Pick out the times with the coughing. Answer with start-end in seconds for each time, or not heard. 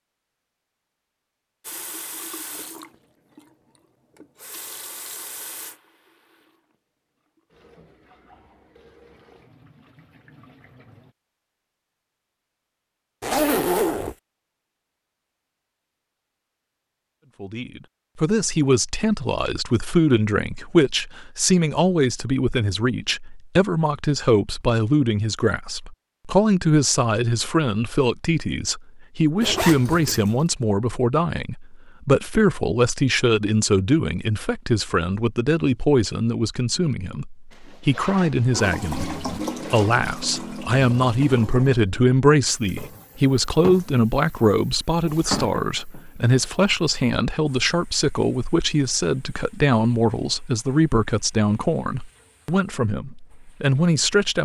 not heard.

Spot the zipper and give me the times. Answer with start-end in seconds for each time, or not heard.
13.2-14.2, 29.4-30.4, 37.5-40.0.